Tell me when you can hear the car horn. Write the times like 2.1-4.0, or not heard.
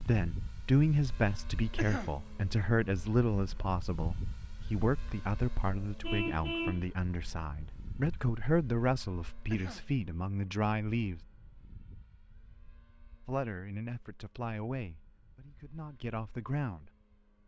6.0-6.8.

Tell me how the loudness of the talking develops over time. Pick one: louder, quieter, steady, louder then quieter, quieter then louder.
quieter.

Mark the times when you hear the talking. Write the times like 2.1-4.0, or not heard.
0.0-11.2, 13.2-16.9.